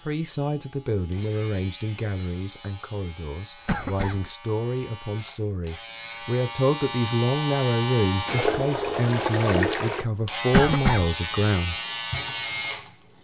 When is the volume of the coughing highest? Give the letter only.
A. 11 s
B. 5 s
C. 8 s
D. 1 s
A.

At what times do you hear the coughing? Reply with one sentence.
The coughing can be heard from 3.6 to 4.2 s and from 10.5 to 11.1 s.